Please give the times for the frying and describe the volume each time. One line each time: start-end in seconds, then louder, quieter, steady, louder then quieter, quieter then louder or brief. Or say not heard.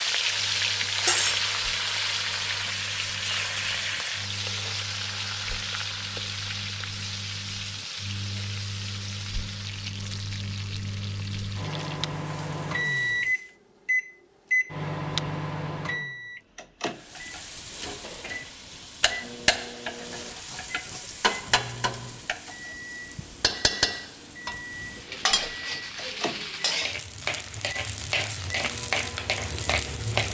0.0-13.6 quieter
16.9-30.2 steady.